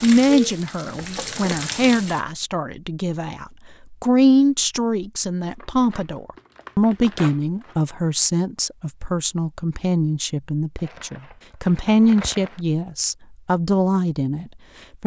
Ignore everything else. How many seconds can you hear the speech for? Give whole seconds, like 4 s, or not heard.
15 s.